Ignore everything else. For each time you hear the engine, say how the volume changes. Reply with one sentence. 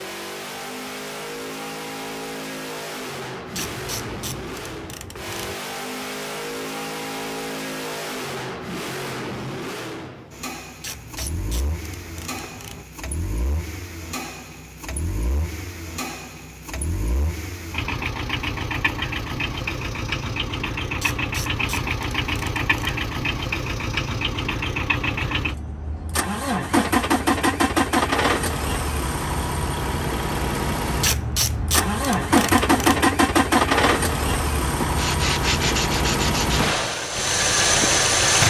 The engine can be heard from 0.0 to 38.4 s, getting louder.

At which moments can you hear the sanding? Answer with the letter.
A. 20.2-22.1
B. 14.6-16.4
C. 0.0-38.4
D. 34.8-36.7
D.